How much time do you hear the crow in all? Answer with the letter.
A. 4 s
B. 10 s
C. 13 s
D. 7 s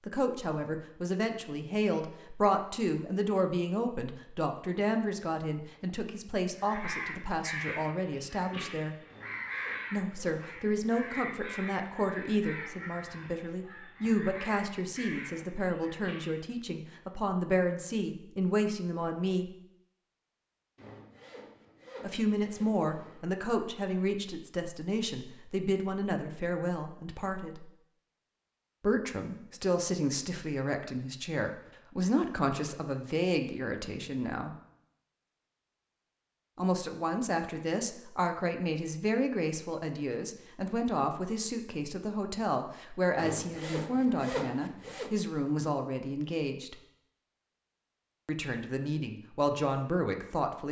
B.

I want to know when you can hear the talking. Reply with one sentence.
You can hear the talking from 0.1 to 8.9 s, from 9.9 to 19.6 s, from 22.0 to 27.7 s, from 28.8 to 34.5 s, from 36.5 to 46.8 s and from 48.2 to 50.6 s.